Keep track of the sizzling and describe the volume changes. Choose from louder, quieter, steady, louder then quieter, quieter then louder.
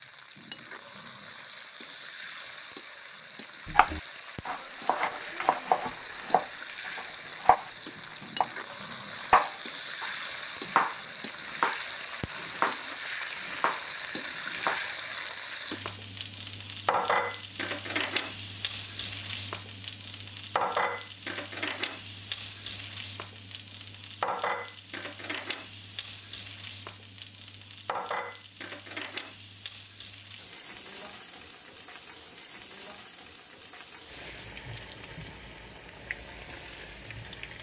louder then quieter.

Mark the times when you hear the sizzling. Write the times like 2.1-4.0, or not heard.
0.0-37.5.